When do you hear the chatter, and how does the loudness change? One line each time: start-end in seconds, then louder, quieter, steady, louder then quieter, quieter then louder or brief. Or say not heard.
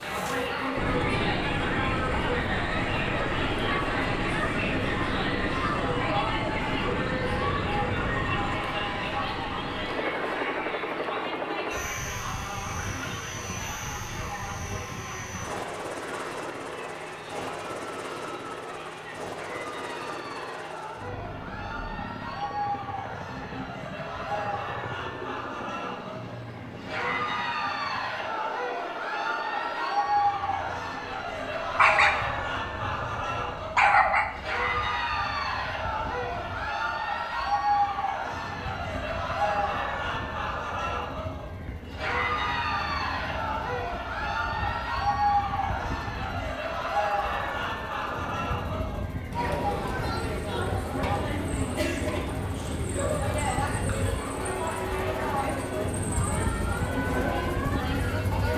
0.0-58.5 quieter then louder.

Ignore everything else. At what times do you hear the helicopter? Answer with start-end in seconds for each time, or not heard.
0.0-58.5.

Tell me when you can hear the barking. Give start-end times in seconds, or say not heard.
31.8-34.3.